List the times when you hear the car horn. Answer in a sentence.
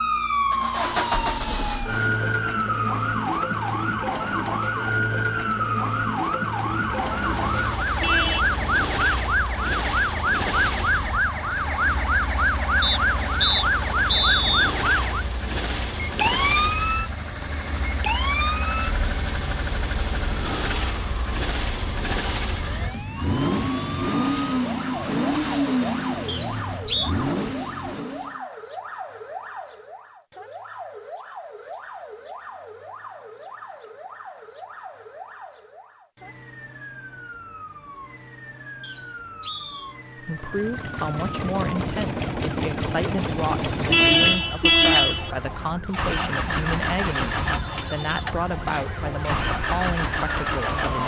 You can hear the car horn from 7.8 to 8.4 s and from 43.5 to 45.3 s.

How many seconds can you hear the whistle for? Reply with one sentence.
The whistle can be heard for 4 seconds in total.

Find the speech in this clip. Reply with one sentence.
You can hear the speech from 40.1 to 51.0 s.